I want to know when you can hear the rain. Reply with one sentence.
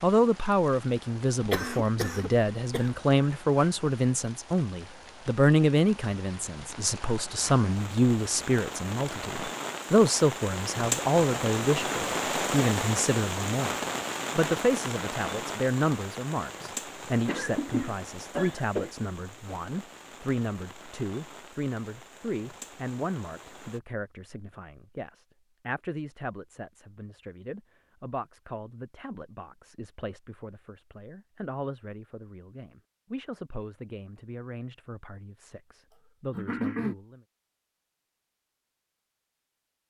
You can hear the rain from 0.0 to 23.8 s.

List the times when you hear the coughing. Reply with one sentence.
The coughing can be heard from 1.4 to 2.9 s, from 17.2 to 18.9 s and from 36.3 to 37.0 s.